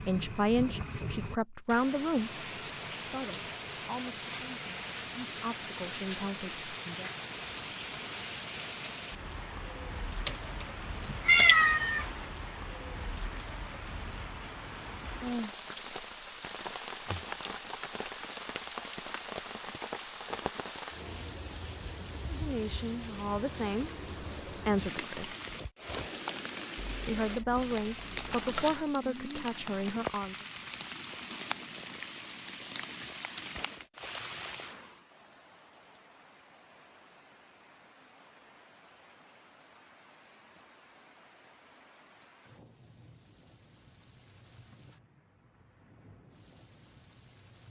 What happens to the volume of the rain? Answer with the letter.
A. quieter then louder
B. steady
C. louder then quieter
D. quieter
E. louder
D.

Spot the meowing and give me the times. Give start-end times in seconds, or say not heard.
10.2-12.1, 26.8-28.9.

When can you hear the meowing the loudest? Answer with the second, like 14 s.
11 s.